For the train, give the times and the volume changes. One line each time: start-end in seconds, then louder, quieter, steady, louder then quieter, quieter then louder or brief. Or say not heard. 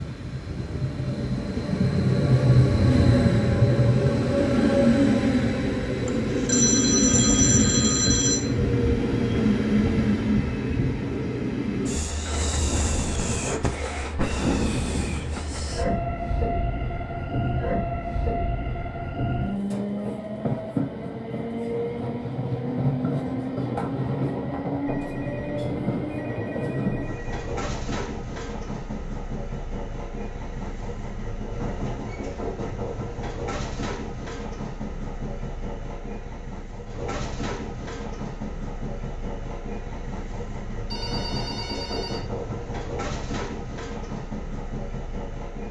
0.0-45.6 quieter.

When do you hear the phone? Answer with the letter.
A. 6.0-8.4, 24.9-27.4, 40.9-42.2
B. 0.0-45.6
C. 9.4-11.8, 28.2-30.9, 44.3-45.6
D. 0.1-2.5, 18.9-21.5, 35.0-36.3
A.